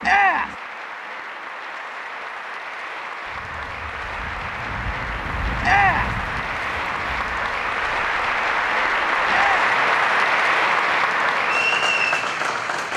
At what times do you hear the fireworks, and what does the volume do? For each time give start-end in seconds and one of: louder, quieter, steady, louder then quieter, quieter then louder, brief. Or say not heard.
not heard.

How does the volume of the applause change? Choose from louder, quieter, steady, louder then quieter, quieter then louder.
louder.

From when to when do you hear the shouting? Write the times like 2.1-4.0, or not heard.
0.0-0.6, 5.6-6.2, 9.2-9.8.